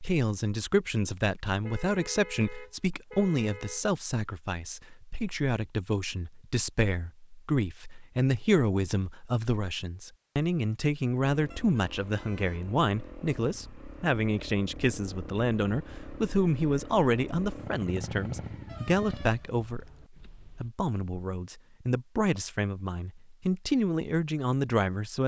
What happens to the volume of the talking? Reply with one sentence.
The volume of the talking stays about the same.